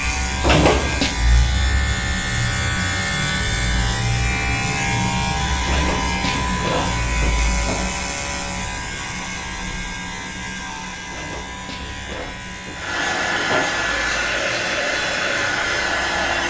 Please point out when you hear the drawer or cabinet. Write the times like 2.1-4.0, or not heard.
0.4-1.1, 5.7-8.0, 11.1-13.8.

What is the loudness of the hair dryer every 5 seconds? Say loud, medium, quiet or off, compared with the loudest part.
off, off, loud, loud.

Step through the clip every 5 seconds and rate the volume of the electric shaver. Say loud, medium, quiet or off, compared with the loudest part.
loud, loud, medium, medium.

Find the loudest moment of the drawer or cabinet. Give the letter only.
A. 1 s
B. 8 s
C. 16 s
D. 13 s
A.